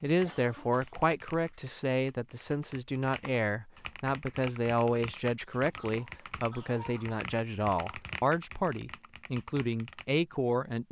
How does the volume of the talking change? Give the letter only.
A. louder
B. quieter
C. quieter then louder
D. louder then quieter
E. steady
E.